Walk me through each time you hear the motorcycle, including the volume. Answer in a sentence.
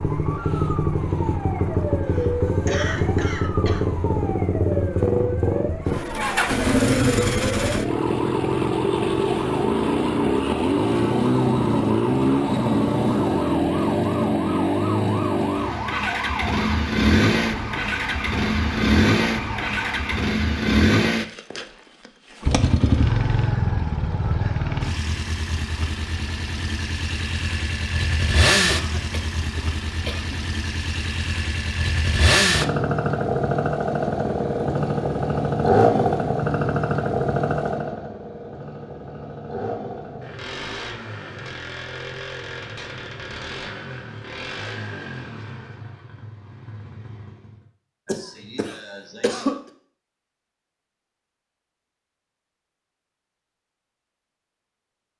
The motorcycle can be heard from 0.0 to 47.6 s, getting quieter.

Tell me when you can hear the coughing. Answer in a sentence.
You can hear the coughing from 2.0 to 4.0 s, from 28.6 to 30.4 s and from 48.0 to 49.5 s.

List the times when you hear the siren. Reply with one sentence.
You can hear the siren from 0.0 to 20.2 s.